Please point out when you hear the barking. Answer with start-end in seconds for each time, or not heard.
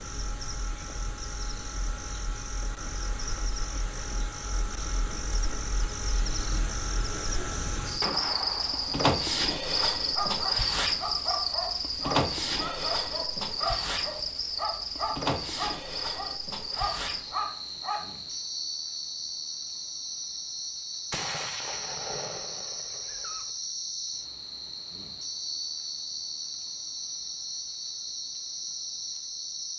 10.2-18.2.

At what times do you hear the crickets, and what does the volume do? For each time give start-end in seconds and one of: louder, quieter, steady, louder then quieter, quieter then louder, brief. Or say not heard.
0.0-29.7 louder then quieter.